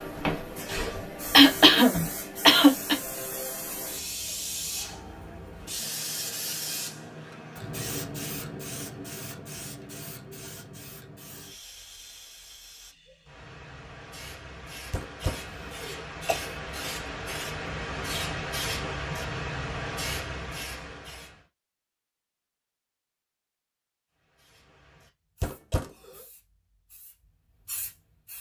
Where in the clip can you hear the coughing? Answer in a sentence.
You can hear the coughing from 1.3 to 3.0 s, from 14.9 to 16.6 s and from 25.4 to 26.2 s.